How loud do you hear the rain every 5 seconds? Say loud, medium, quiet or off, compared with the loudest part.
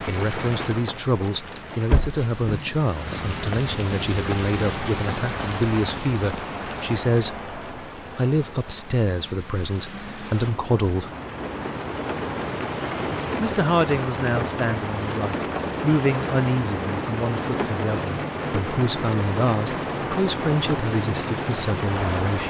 loud, medium, loud, loud, loud.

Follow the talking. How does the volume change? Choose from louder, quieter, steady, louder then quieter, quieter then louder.
steady.